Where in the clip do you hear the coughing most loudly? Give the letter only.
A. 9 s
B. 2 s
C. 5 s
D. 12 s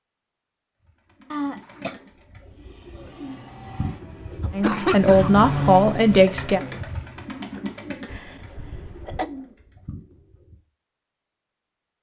C.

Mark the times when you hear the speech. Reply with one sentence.
You can hear the speech from 4.5 to 6.6 s.